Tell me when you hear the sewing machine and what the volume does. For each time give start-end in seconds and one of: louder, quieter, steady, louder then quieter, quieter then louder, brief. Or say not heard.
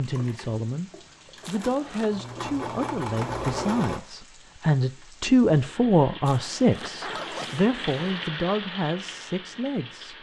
0.0-4.0 louder.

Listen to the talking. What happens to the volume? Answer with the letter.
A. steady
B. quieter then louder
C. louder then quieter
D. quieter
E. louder
C.